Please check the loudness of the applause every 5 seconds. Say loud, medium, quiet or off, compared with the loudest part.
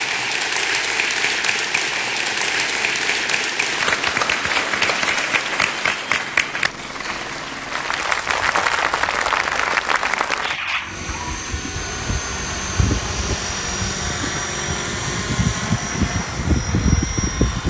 loud, loud, medium, quiet.